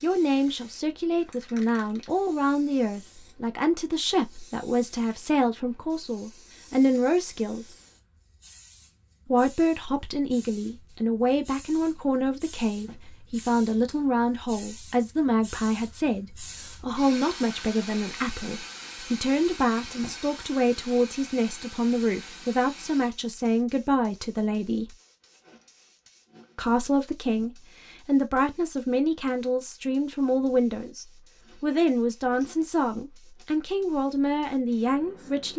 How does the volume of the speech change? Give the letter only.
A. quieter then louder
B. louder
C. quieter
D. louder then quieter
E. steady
E.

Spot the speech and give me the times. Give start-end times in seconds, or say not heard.
0.0-7.7, 9.2-24.9, 26.6-35.5.